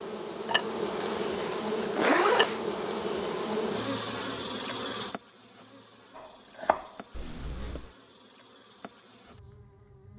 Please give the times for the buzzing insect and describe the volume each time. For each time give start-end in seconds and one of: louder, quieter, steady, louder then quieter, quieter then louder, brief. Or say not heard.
0.0-10.1 quieter.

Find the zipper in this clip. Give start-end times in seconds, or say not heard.
1.0-2.6, 7.1-8.0.